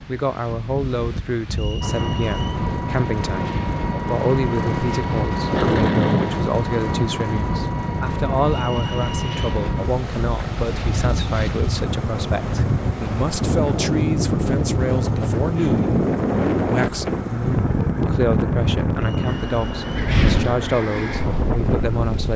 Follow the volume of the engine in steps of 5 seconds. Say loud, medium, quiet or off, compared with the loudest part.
loud, loud, medium, medium, medium.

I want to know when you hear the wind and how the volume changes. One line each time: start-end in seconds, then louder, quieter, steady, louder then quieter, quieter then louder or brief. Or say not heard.
0.0-22.3 louder.